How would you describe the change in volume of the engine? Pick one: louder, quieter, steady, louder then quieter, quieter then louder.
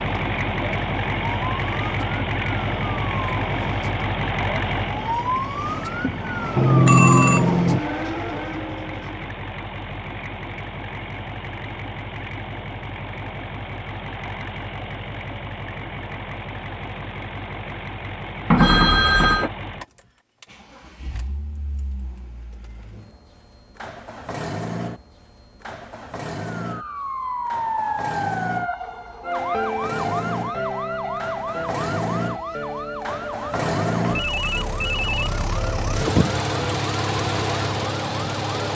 quieter then louder.